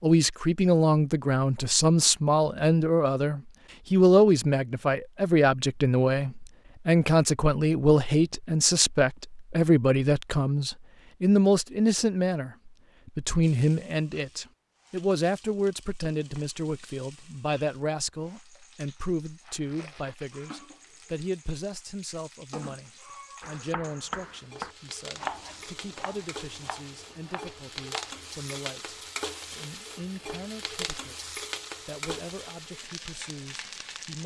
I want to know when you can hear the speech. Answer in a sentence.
The speech can be heard from 0.0 to 34.2 s.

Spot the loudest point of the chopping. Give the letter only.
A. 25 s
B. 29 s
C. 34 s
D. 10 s
A.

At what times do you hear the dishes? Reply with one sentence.
You can't hear the dishes here.